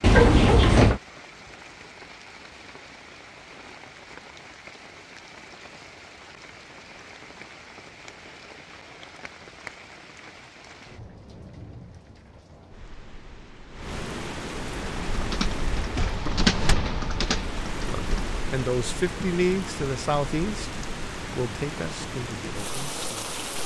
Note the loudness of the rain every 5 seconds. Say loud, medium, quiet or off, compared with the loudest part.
medium, medium, medium, loud, loud.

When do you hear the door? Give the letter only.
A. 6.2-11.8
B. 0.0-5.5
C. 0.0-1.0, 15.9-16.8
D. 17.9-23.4
C.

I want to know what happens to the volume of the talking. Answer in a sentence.
The loudness of the talking goes down.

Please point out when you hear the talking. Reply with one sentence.
The talking can be heard from 17.9 to 23.4 s.